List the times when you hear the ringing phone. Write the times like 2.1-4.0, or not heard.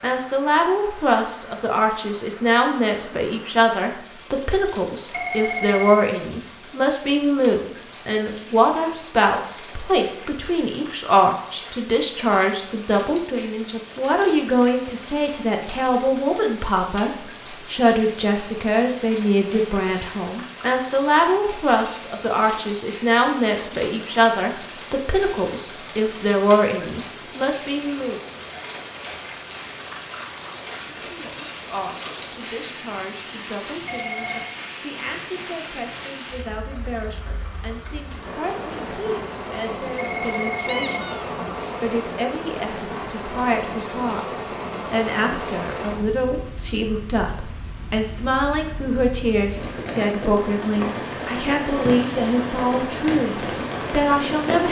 5.1-6.1, 33.9-34.5, 40.0-41.1.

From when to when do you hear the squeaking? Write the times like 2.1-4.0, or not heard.
40.6-41.2.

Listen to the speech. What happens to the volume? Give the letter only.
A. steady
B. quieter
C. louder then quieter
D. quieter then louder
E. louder
D.